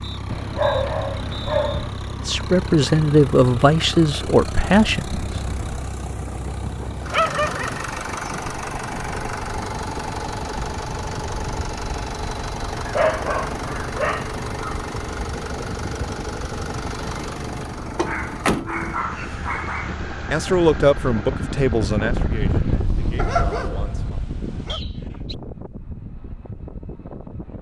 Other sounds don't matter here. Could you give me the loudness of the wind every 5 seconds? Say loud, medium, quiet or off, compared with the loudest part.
medium, medium, medium, medium, loud, medium.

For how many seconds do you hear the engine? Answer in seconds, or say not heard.
24 s.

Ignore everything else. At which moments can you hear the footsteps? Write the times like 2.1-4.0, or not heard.
not heard.